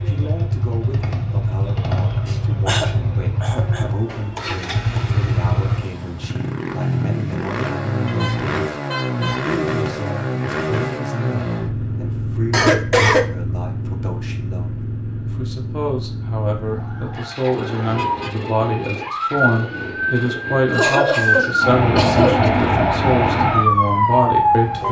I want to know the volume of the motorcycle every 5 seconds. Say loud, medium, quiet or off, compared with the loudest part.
loud, loud, loud, medium, medium.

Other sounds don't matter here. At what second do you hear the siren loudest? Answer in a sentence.
The volume of the siren peaks at 24 seconds.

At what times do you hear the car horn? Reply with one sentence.
The car horn can be heard from 8.1 to 9.5 s and from 17.8 to 18.6 s.